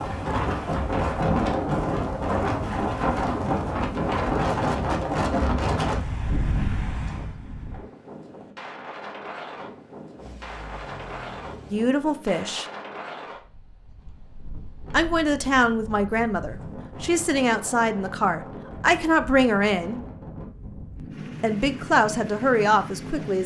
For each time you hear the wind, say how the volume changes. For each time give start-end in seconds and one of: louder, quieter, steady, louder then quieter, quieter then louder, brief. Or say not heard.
0.0-23.4 quieter.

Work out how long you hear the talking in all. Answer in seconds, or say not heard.
8 s.